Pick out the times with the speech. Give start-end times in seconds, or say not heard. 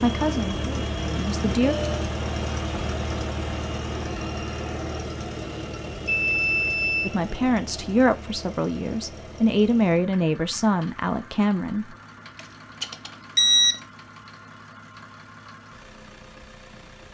0.0-1.8, 7.0-11.9.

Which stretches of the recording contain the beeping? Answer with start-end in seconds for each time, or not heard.
1.6-2.0, 6.0-7.2, 12.3-13.8.